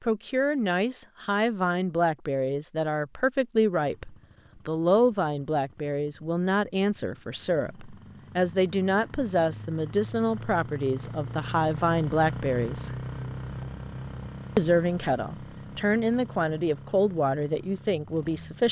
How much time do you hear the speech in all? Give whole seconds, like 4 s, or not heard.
17 s.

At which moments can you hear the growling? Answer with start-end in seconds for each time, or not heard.
not heard.